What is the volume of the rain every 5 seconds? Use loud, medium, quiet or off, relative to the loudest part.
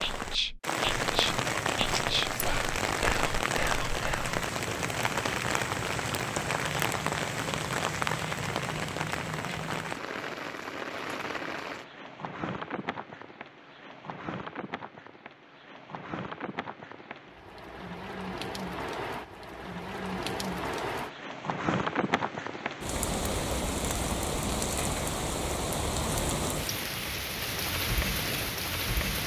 loud, loud, medium, medium, loud, loud.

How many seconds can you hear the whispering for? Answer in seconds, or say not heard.
4 s.